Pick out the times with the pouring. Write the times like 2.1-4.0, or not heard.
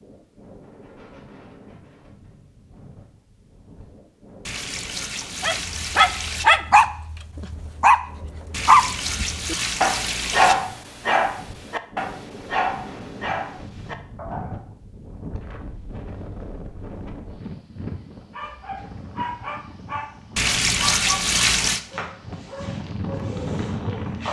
4.5-6.5, 8.5-10.6, 20.4-21.8.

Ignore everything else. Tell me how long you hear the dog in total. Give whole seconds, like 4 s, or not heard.
15 s.